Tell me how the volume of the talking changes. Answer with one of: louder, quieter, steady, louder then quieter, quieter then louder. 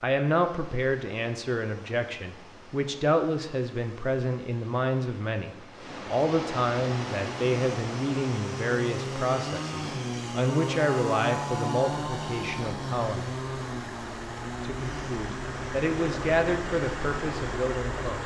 steady.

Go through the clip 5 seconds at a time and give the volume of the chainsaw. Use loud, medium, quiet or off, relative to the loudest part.
off, loud, loud, medium.